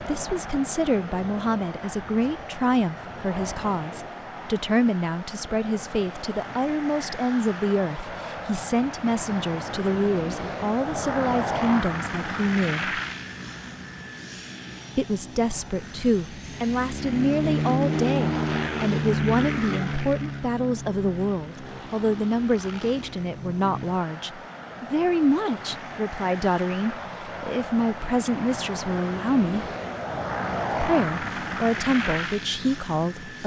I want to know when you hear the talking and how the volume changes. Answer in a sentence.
The talking can be heard from 0.0 to 12.9 s, at a steady volume; from 14.9 to 29.7 s, at a steady volume; and briefly from 30.7 to 33.4 s.